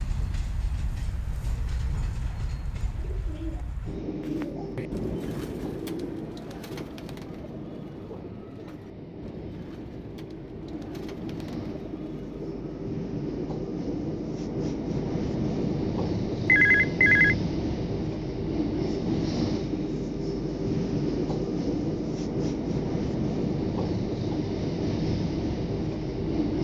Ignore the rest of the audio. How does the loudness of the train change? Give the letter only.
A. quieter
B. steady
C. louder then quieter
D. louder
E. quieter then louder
D.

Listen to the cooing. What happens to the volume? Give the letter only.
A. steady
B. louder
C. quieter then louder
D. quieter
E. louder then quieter
D.